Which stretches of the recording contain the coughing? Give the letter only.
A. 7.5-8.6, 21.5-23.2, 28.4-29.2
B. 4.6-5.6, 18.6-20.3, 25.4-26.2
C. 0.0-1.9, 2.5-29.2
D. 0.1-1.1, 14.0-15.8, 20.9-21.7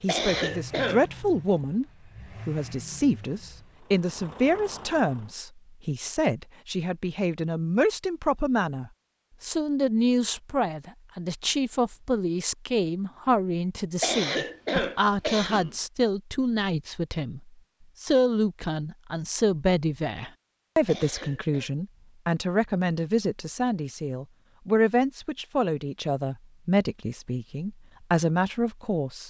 D.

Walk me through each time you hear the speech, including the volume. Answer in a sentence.
You can hear the speech briefly from 0.0 to 1.9 s; and from 2.5 to 29.2 s, at a steady volume.